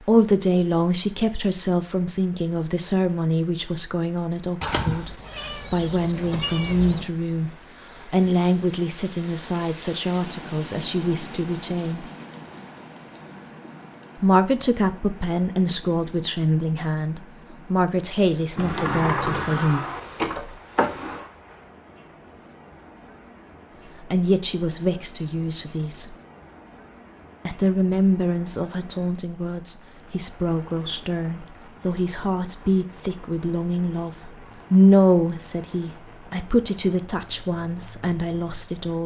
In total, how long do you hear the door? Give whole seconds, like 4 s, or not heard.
3 s.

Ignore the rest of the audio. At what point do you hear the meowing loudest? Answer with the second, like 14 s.
5 s.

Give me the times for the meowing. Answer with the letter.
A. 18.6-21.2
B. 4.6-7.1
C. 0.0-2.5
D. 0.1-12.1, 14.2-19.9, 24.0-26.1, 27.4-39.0
B.